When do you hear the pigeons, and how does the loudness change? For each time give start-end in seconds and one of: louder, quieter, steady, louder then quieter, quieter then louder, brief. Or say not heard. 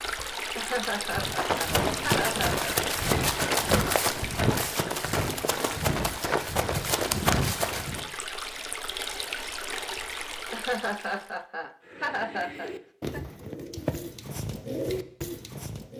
11.8-15.9 louder.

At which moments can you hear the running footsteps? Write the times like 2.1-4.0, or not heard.
1.1-8.1.